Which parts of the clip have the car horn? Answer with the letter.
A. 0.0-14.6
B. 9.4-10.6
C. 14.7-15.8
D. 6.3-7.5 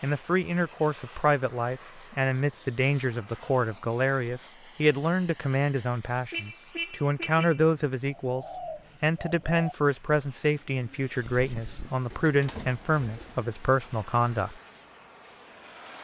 D.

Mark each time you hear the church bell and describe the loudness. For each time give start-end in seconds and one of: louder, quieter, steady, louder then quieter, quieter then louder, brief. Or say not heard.
not heard.